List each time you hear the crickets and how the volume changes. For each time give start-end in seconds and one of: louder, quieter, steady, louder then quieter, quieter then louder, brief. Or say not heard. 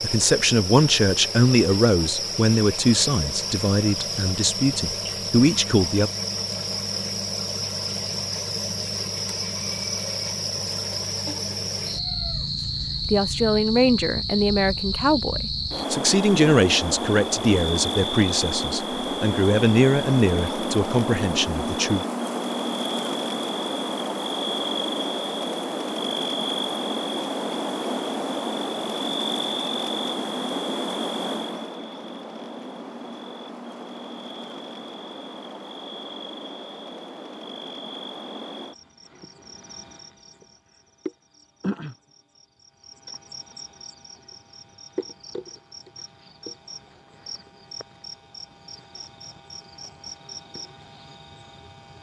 0.0-51.9 quieter.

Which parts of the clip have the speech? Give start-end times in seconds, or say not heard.
0.0-6.1, 13.0-22.1.